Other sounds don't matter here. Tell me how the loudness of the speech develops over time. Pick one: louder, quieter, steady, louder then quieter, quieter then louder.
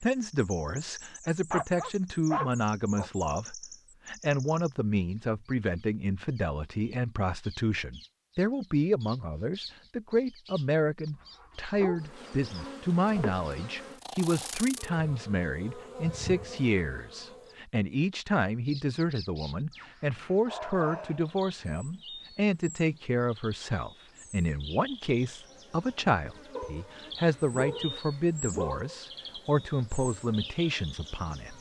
steady.